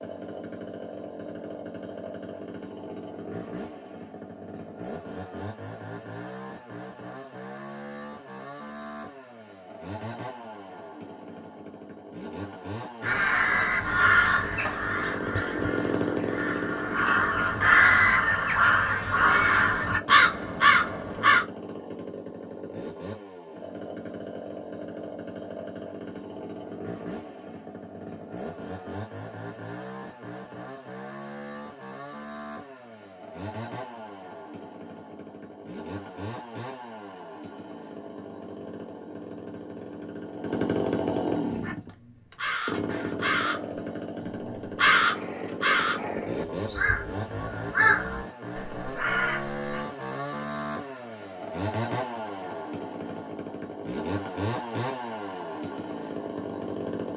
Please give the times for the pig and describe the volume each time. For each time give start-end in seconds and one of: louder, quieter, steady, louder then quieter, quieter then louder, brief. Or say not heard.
not heard.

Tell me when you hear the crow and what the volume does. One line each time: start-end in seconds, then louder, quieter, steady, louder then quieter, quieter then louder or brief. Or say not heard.
13.0-21.4 quieter then louder
41.5-49.9 louder then quieter.